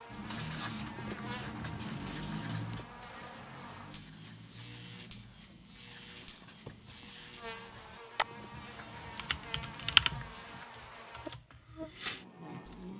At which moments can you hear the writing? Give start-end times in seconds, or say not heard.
0.1-10.7.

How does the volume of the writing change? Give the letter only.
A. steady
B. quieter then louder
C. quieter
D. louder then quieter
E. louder
C.